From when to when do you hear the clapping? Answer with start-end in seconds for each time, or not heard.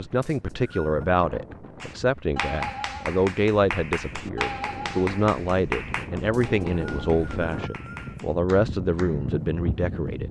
1.8-9.3.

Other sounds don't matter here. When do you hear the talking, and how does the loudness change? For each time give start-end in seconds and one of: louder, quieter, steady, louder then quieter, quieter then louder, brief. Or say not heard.
0.0-10.2 steady.